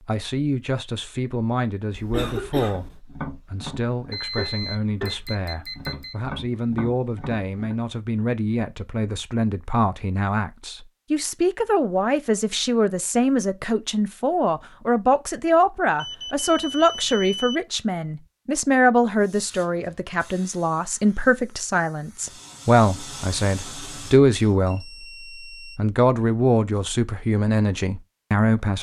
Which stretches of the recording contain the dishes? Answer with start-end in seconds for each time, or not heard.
not heard.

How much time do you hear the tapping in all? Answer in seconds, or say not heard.
5 s.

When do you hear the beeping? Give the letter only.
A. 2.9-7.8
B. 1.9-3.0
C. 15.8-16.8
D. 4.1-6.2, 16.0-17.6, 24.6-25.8
D.